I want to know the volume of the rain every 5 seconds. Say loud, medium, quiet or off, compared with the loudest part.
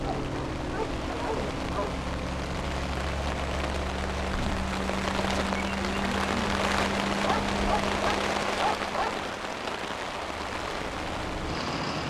medium, loud, medium.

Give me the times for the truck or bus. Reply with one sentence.
The truck or bus can be heard from 0.0 to 12.0 s.